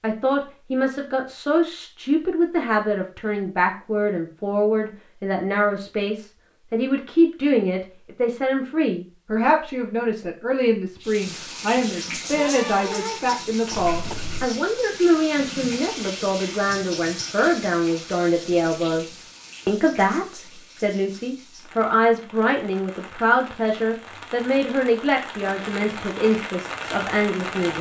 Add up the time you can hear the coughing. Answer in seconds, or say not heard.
2 s.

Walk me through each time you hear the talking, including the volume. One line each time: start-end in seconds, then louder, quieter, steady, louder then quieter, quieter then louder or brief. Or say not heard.
0.0-27.7 steady.